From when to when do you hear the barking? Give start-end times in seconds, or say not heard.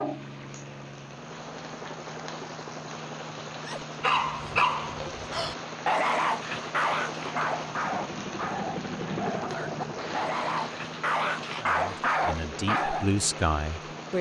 3.6-13.1.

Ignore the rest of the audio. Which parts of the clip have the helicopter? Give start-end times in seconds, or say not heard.
0.0-14.1.